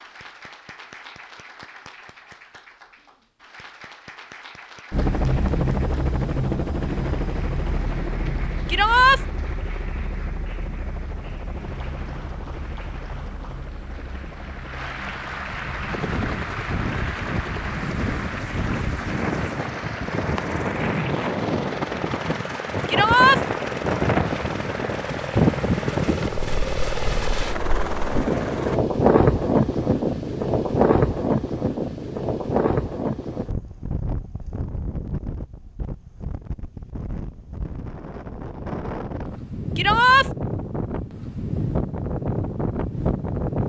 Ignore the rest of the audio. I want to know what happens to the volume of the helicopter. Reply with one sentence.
The volume of the helicopter goes down, then up.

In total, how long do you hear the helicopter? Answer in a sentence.
You can hear the helicopter for 24 seconds altogether.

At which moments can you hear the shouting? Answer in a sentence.
You can hear the shouting from 8.7 to 9.2 s, from 22.9 to 23.4 s and from 39.8 to 40.3 s.